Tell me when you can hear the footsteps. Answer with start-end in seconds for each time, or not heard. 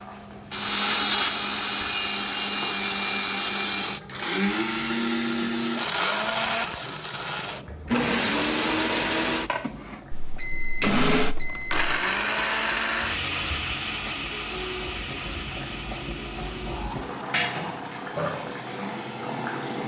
not heard.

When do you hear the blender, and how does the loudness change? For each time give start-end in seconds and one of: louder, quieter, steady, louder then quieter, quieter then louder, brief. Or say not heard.
0.0-19.8 quieter.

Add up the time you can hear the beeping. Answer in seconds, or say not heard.
2 s.